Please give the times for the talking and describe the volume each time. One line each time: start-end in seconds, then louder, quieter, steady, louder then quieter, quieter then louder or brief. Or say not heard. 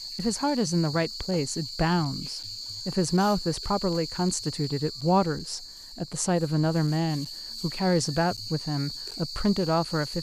0.1-10.1 steady.